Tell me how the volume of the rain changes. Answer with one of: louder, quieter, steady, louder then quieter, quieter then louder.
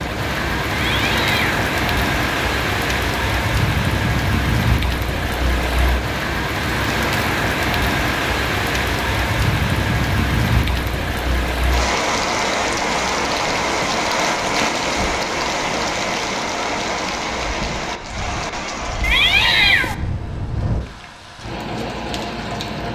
quieter.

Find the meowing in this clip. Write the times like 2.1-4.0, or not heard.
0.7-1.6, 19.0-19.9.